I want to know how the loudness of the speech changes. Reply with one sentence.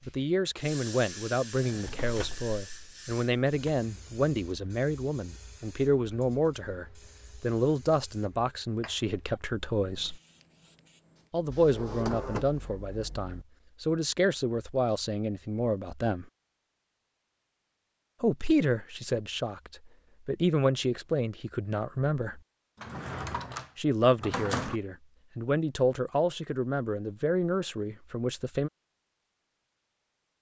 The loudness of the speech stays about the same.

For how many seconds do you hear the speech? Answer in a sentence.
The speech can be heard for 24 seconds in total.